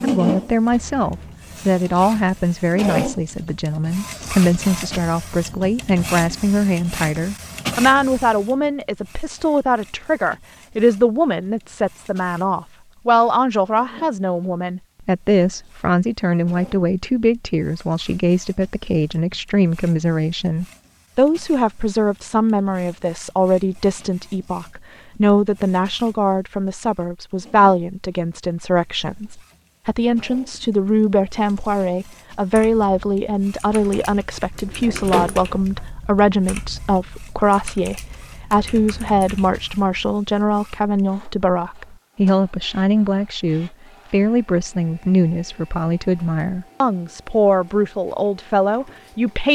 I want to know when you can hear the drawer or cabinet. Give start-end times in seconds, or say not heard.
33.7-35.9.